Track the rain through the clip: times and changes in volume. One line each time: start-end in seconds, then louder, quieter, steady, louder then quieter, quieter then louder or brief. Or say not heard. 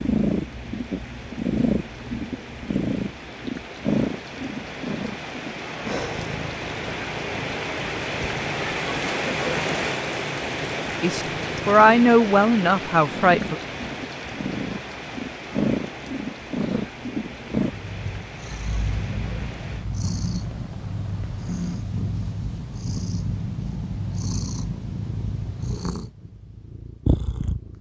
0.0-21.8 louder then quieter.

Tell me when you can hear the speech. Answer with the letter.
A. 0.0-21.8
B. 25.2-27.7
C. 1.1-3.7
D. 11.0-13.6
D.